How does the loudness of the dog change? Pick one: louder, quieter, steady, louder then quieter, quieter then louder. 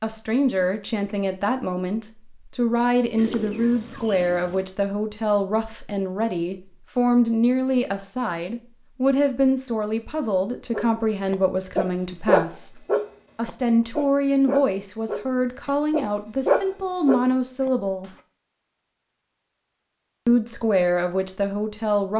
quieter then louder.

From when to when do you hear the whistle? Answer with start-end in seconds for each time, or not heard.
not heard.